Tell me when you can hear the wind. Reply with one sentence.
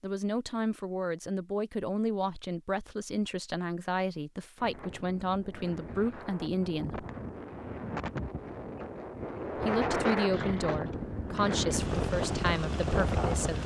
The wind can be heard from 4.5 to 13.6 s.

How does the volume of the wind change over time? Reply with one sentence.
The loudness of the wind goes up.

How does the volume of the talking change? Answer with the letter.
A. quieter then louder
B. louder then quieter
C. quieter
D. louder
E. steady
E.